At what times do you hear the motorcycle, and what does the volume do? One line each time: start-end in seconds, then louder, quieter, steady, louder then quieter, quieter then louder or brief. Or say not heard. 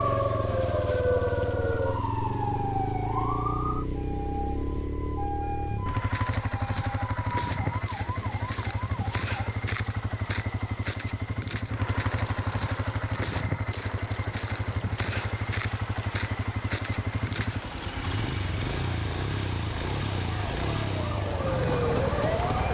0.0-22.6 steady.